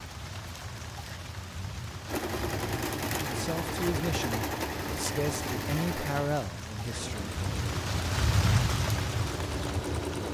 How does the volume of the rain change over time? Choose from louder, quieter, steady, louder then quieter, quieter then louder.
louder.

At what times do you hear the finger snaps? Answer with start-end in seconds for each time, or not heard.
not heard.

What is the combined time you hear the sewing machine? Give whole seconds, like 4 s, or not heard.
8 s.